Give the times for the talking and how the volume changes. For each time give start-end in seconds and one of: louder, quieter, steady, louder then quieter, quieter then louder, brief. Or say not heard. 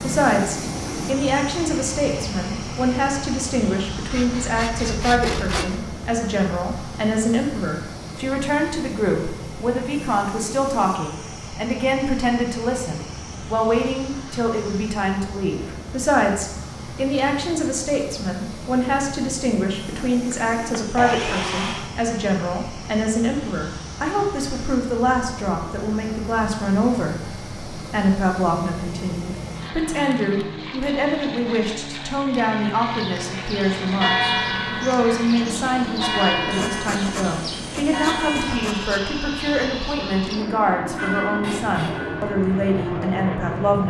0.0-43.8 steady.